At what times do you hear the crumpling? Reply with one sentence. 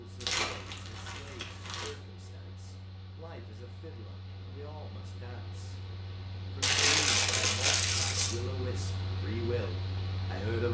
You can hear the crumpling from 0.2 to 1.9 s and from 6.6 to 8.3 s.